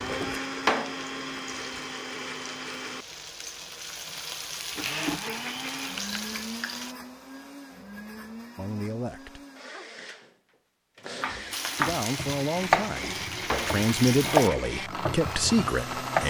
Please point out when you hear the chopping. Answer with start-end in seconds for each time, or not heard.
11.2-16.2.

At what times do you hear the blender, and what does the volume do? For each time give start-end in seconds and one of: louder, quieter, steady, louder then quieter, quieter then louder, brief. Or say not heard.
0.0-16.2 quieter then louder.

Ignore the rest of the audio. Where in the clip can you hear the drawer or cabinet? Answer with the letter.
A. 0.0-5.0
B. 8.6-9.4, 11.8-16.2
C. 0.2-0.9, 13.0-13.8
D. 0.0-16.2
C.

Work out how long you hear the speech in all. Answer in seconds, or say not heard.
5 s.